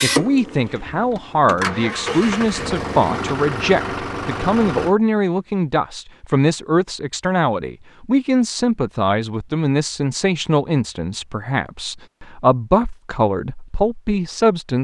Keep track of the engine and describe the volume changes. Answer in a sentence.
The volume of the engine goes up.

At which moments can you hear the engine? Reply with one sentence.
You can hear the engine from 0.0 to 5.0 s.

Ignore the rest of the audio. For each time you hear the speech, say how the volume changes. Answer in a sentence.
You can hear the speech from 0.0 to 14.7 s, at a steady volume.